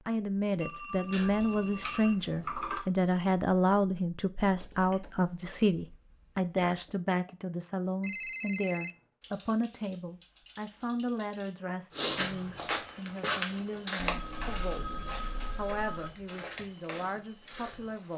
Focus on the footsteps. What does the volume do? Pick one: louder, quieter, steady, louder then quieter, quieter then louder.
quieter.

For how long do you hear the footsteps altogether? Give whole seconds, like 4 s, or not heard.
6 s.